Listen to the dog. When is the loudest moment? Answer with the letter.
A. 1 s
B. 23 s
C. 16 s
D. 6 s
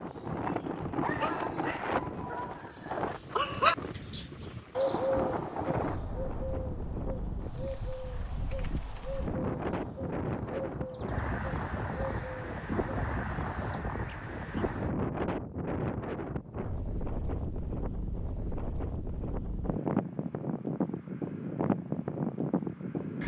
A.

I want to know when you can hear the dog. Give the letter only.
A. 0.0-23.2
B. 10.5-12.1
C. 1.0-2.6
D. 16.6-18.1
C.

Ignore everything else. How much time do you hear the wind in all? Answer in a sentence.
The wind can be heard for 23 seconds in total.